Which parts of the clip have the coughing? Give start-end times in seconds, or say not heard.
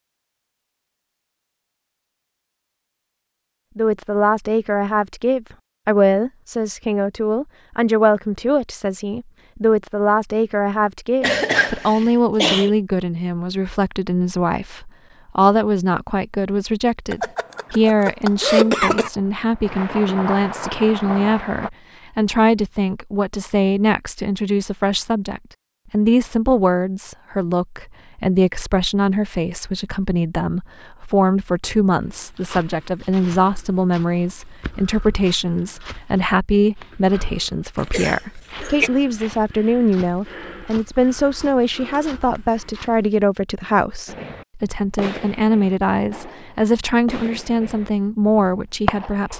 11.2-12.7, 17.1-19.1, 37.8-38.9.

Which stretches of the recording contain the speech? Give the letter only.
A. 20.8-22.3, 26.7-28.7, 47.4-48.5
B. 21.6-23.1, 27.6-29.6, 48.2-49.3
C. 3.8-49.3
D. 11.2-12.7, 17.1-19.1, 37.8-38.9
C.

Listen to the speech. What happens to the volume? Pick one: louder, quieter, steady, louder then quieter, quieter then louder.
steady.